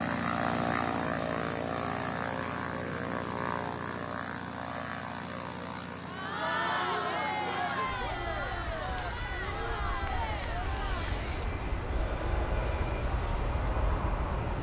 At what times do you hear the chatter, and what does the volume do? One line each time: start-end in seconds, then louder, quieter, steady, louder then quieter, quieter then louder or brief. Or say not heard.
6.0-14.5 quieter.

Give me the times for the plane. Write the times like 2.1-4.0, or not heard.
0.0-14.5.